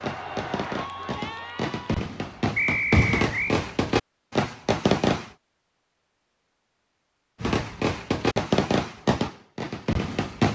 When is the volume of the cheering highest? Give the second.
1 s.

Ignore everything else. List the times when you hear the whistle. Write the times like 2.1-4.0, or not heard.
2.5-3.5.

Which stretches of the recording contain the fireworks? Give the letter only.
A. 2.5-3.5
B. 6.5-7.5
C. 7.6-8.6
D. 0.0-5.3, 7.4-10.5
D.